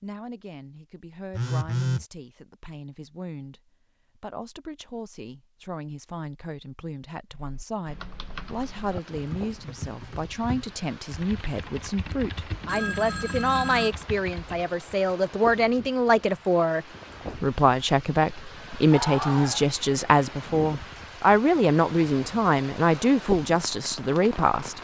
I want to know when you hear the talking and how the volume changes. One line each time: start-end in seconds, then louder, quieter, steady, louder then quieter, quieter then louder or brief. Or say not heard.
0.0-24.7 louder.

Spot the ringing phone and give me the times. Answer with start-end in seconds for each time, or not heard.
1.3-2.0, 12.7-13.9, 18.9-19.6.